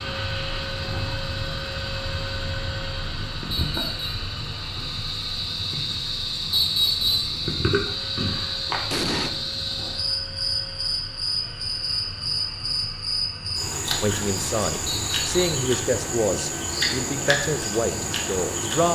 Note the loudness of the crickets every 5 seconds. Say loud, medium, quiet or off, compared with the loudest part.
medium, loud, loud, loud.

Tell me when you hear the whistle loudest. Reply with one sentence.
The loudest moment of the whistle is at 7 seconds.